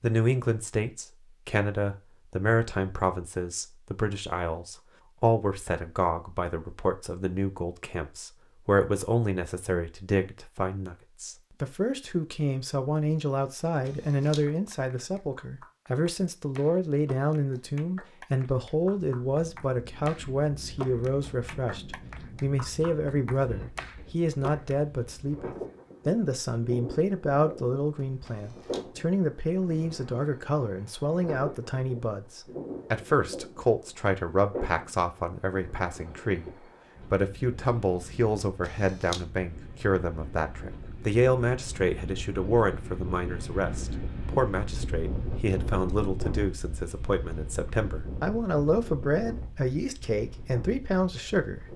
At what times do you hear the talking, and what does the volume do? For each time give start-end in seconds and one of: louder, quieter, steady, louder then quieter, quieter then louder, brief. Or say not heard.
0.0-51.7 steady.